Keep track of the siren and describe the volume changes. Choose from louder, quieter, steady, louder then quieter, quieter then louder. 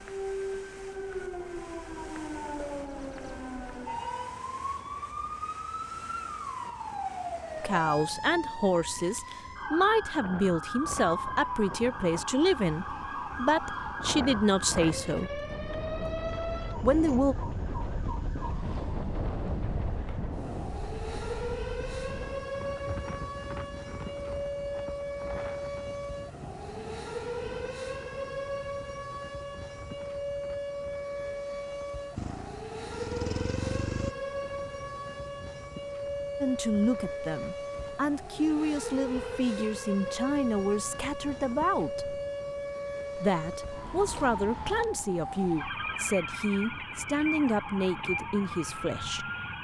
steady.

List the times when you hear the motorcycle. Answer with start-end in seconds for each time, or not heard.
32.1-34.1.